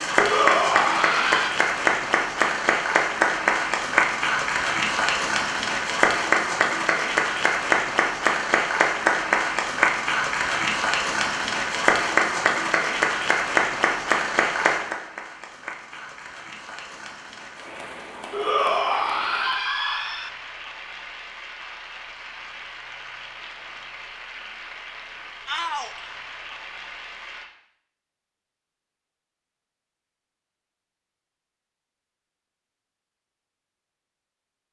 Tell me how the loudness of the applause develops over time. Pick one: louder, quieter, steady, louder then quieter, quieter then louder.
quieter.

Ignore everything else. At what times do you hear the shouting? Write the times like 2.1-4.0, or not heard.
0.1-1.6, 18.3-20.3, 25.4-26.1.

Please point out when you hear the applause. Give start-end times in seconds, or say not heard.
0.0-27.4.